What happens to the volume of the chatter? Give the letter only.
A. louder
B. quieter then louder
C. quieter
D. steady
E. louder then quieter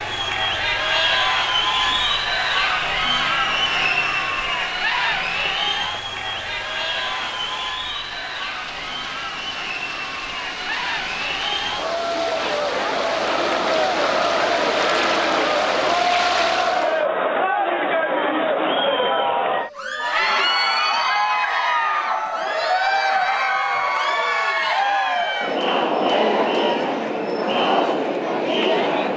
B.